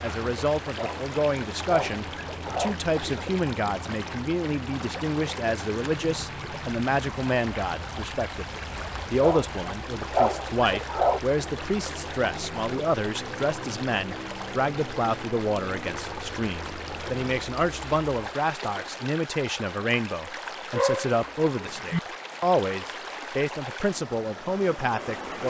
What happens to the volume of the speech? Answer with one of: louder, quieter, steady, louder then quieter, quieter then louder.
steady.